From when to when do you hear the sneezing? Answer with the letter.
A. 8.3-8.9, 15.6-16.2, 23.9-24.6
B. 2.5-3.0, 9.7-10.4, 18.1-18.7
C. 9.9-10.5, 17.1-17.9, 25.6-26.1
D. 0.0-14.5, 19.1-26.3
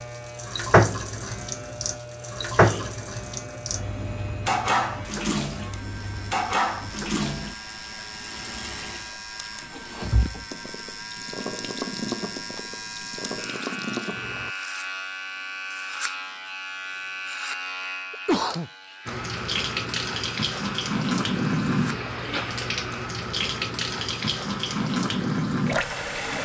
B.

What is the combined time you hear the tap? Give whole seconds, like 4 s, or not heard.
22 s.